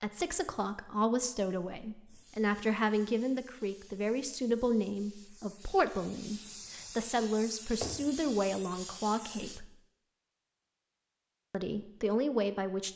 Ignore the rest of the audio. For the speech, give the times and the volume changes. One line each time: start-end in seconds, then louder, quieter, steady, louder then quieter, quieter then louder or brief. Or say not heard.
0.0-9.7 steady
11.5-12.9 brief.